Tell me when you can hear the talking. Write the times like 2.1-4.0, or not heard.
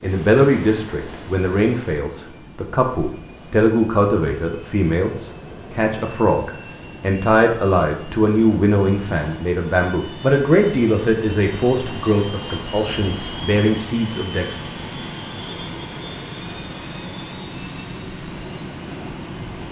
0.0-14.4.